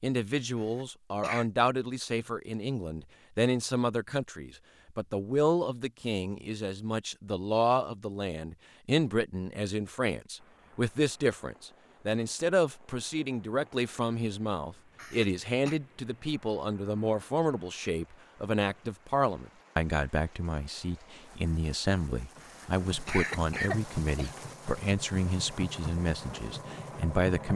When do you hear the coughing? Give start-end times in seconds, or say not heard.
0.6-1.5, 14.9-15.8, 22.4-24.4.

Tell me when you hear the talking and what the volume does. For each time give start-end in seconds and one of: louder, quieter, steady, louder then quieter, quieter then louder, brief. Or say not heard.
0.0-27.5 steady.